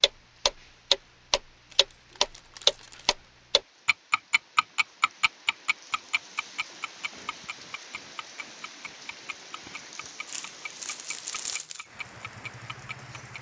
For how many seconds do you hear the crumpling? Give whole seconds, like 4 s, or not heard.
3 s.